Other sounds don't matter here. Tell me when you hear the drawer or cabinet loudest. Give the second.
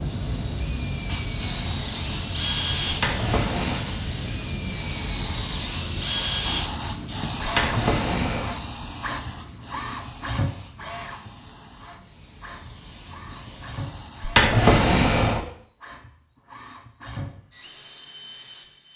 15 s.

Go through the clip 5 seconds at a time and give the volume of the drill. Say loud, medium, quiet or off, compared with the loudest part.
loud, loud, medium, medium.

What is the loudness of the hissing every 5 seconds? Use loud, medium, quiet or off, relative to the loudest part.
loud, loud, quiet, off.